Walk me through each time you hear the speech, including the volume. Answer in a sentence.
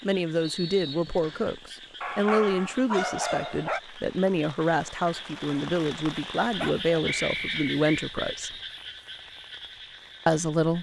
The speech can be heard from 0.0 to 8.6 s, at a steady volume; and briefly from 10.2 to 10.7 s.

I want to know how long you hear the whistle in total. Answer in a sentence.
You can hear the whistle for 2 seconds altogether.